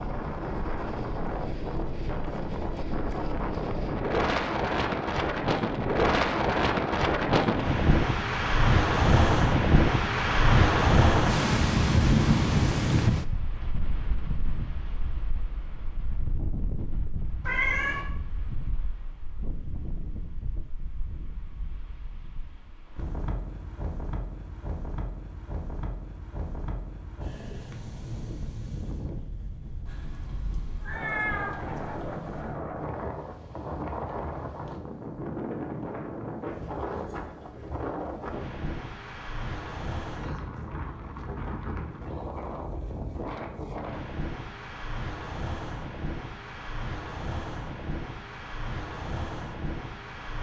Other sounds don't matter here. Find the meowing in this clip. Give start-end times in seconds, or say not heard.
17.4-18.1, 29.9-32.5.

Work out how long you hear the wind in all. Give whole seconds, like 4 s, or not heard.
50 s.